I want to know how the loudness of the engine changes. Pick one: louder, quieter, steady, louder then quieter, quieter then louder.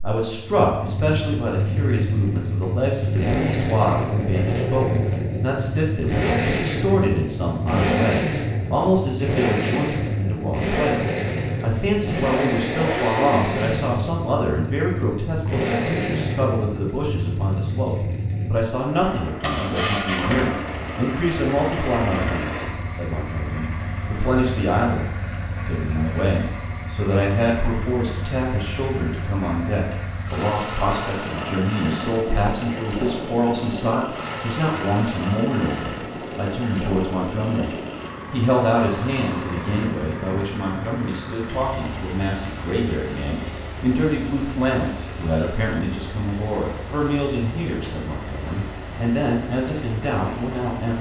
quieter.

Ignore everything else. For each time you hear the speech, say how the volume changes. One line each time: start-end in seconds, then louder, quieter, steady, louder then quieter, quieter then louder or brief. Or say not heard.
0.0-50.9 steady.